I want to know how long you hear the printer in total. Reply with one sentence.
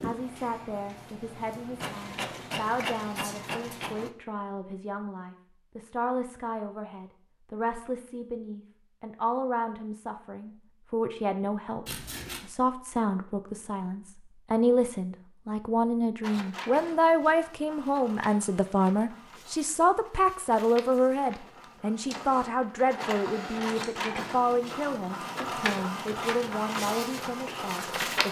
You can hear the printer for 16 seconds altogether.